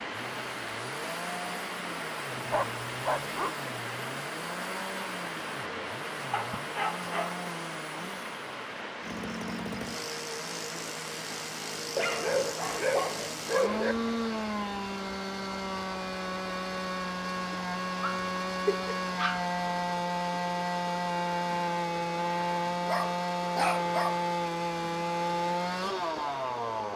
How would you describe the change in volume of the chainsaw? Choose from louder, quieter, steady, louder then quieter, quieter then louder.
louder.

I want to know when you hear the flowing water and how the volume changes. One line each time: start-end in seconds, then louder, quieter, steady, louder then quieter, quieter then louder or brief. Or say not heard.
0.0-26.9 quieter.